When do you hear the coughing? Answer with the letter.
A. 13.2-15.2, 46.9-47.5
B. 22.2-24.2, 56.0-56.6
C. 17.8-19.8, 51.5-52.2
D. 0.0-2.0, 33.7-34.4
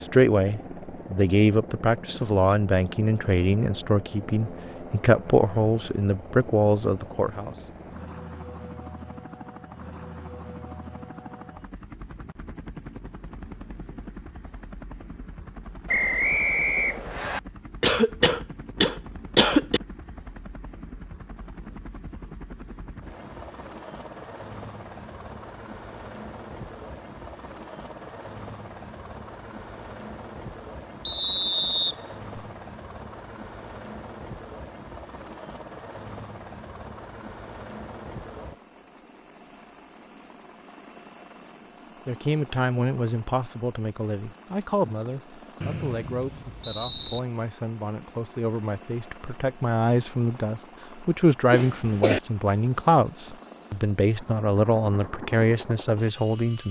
C.